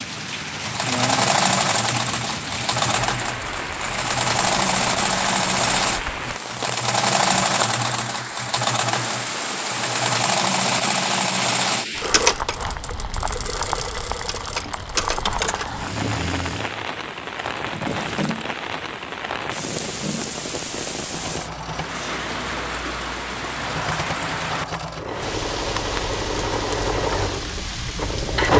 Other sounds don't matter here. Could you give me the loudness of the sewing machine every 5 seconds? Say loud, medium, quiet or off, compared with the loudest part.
loud, loud, loud, medium, medium, loud.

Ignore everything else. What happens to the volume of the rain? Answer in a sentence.
The volume of the rain stays about the same.